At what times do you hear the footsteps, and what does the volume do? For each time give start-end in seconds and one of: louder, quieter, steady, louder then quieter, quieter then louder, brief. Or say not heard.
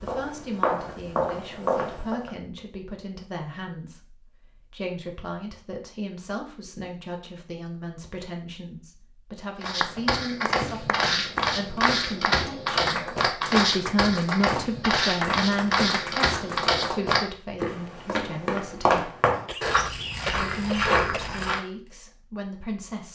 0.0-2.3 brief
9.6-21.6 steady.